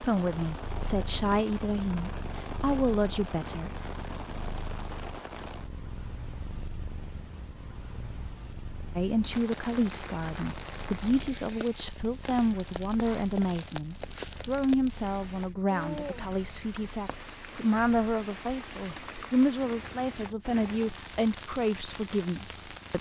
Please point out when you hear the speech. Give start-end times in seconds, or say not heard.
0.0-3.7, 8.9-22.9.